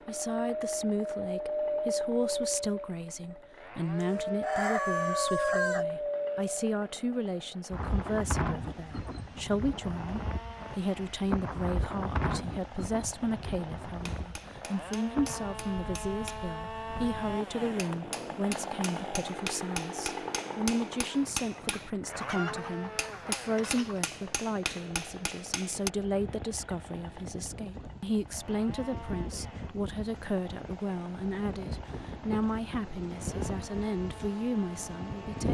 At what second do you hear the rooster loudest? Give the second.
5 s.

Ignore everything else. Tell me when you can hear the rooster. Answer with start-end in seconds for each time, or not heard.
4.0-5.8, 21.4-24.1.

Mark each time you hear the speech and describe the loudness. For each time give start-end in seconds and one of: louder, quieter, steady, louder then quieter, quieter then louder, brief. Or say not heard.
0.1-35.4 steady.